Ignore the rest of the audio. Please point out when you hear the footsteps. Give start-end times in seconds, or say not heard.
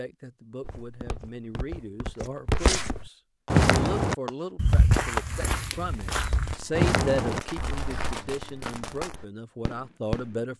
0.6-8.2.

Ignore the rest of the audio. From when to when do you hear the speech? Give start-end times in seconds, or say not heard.
0.0-10.5.